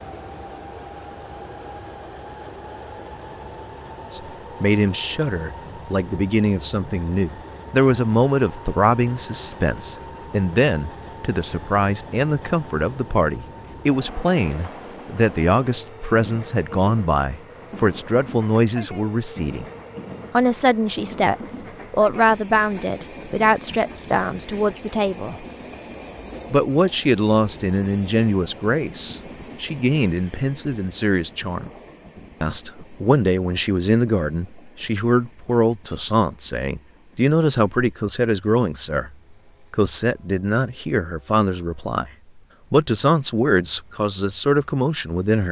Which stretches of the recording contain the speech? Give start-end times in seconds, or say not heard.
4.1-19.6, 20.3-25.4, 26.5-31.7, 32.4-42.1, 42.7-45.4.